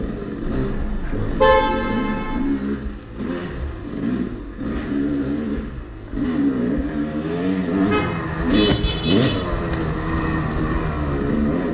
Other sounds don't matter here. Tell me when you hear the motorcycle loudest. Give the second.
9 s.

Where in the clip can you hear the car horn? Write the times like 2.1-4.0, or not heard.
0.6-2.4, 7.8-9.3.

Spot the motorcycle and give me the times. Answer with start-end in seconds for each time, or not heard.
0.0-11.6.